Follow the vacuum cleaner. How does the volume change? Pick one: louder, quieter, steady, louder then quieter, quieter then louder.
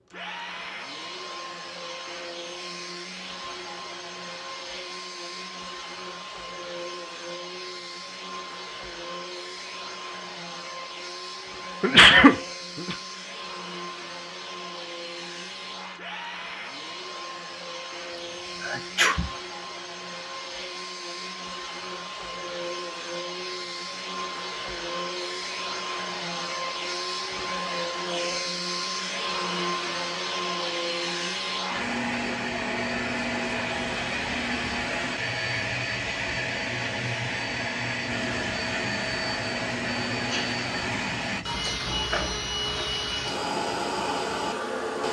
louder.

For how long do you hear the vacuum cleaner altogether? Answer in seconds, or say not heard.
45 s.